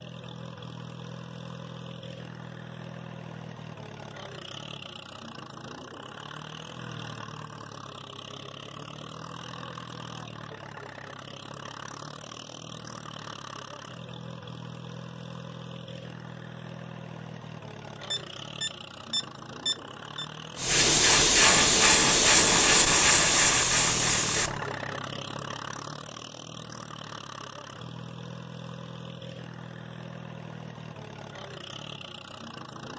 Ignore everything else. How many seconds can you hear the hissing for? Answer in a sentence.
The hissing can be heard for 4 seconds in total.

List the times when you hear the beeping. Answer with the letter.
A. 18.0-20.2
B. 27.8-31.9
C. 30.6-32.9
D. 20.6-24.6
A.